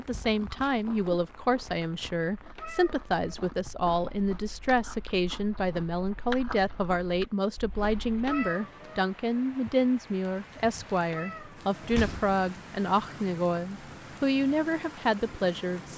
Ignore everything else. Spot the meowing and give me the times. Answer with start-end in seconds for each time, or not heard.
2.5-3.3, 8.2-9.1, 11.1-11.7.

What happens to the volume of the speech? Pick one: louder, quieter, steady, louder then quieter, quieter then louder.
steady.